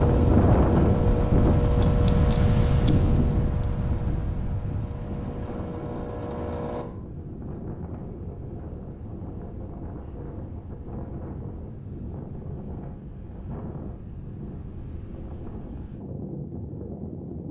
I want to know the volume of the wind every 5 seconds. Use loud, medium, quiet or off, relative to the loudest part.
loud, quiet, quiet, quiet.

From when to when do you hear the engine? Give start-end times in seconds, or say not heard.
0.0-6.8.